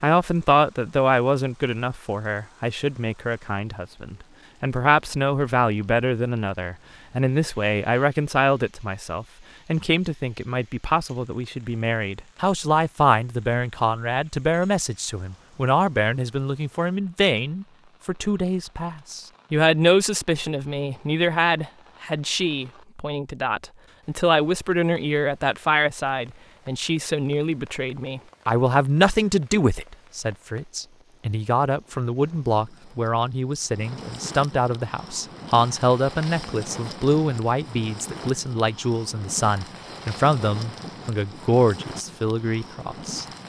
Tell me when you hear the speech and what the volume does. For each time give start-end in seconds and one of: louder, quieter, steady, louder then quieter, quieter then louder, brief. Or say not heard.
0.0-43.2 steady.